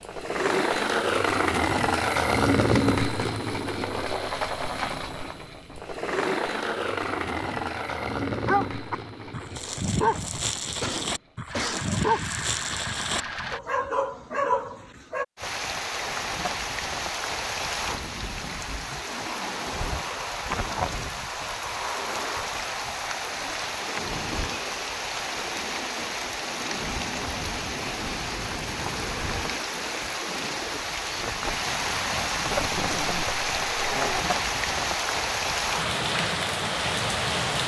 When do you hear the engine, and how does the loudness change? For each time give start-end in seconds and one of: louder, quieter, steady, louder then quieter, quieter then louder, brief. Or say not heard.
0.0-13.6 quieter.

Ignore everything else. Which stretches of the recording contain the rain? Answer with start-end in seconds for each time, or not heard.
15.3-37.6.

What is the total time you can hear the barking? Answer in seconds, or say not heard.
8 s.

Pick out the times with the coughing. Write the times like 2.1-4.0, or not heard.
10.8-11.9.